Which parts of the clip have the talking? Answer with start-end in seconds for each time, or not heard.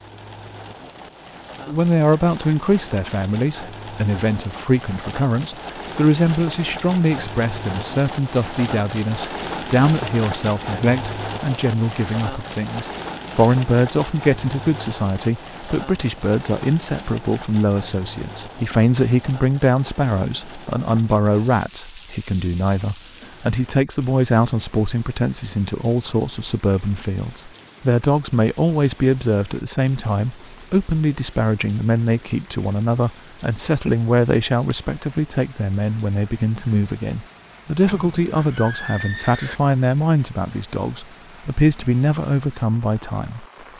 1.6-43.5.